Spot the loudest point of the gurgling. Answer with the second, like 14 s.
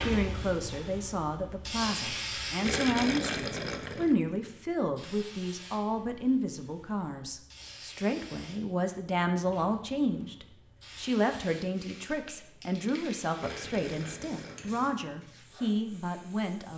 3 s.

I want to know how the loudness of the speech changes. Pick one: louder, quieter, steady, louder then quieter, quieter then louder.
steady.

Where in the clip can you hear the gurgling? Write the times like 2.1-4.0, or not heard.
2.6-4.2, 13.3-14.9.